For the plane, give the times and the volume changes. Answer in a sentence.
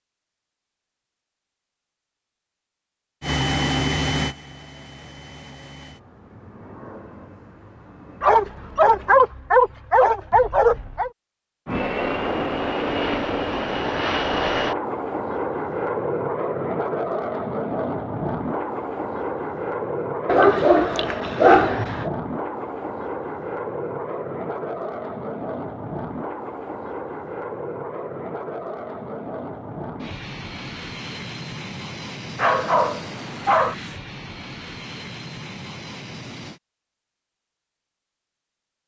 The plane can be heard from 3.2 to 9.3 s, getting quieter; and from 11.7 to 36.6 s, getting quieter.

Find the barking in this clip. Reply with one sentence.
The barking can be heard from 8.2 to 11.1 s, from 20.2 to 22.1 s and from 32.4 to 33.8 s.